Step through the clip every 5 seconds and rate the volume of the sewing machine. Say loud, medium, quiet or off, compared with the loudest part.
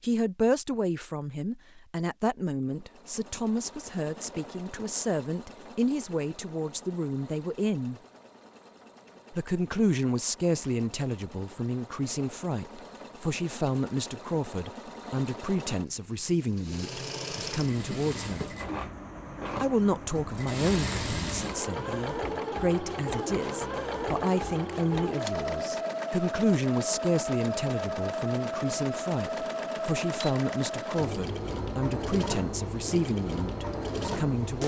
quiet, quiet, quiet, medium, loud, loud, loud.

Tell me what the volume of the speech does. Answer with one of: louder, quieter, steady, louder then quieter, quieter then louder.
steady.